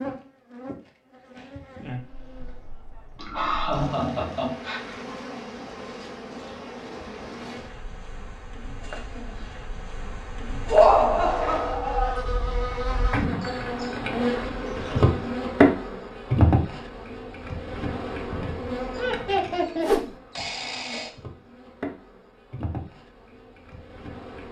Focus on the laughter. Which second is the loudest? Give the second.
11 s.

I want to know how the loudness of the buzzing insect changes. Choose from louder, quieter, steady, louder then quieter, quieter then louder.
louder then quieter.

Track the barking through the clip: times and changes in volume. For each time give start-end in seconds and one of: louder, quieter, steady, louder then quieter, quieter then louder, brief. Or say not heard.
not heard.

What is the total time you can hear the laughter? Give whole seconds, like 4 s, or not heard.
4 s.